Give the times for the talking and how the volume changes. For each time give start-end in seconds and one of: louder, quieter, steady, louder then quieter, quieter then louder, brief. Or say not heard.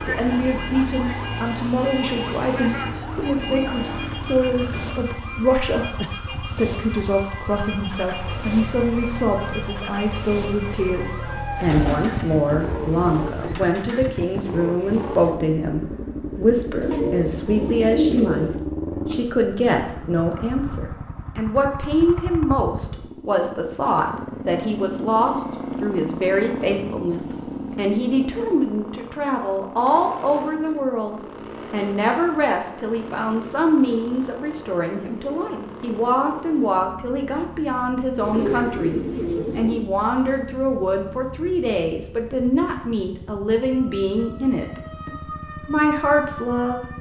0.1-46.9 steady.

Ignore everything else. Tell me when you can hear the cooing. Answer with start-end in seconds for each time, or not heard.
11.6-13.4, 16.8-18.6, 38.2-39.9.